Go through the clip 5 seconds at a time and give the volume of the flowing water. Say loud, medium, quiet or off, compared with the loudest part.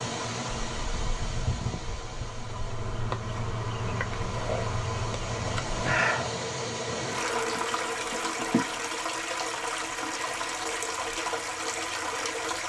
medium, loud, loud.